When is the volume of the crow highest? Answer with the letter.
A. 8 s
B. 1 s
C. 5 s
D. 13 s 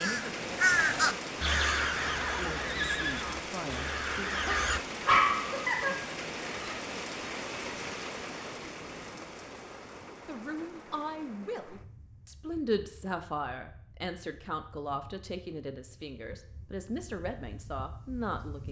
B.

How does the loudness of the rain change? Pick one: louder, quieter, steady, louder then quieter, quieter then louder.
quieter.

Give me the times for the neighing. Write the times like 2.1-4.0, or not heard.
2.0-3.5.